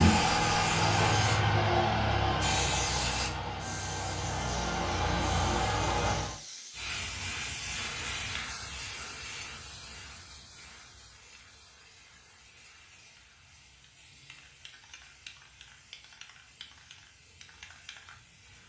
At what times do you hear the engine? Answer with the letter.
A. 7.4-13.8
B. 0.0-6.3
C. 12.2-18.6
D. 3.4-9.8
B.